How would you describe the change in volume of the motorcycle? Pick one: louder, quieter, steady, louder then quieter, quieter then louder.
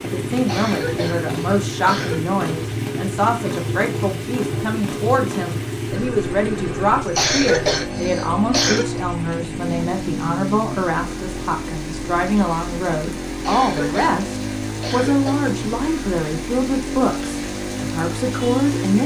steady.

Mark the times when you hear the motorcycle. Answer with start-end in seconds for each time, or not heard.
0.0-19.0.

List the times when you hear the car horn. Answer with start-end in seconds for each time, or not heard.
not heard.